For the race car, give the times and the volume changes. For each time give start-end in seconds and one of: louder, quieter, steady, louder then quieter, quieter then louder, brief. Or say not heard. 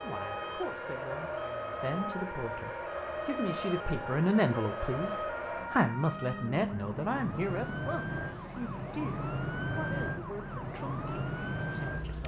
0.0-12.2 quieter.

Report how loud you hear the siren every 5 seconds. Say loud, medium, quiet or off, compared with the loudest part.
medium, loud, loud.